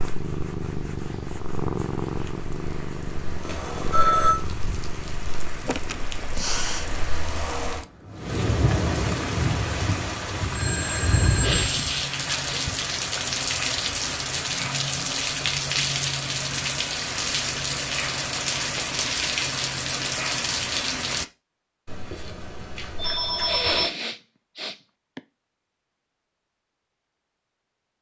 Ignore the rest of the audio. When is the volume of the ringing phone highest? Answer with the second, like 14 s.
4 s.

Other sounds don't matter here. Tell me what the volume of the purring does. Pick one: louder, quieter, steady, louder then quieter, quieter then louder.
quieter.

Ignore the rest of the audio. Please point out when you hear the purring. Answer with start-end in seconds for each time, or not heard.
0.0-7.3.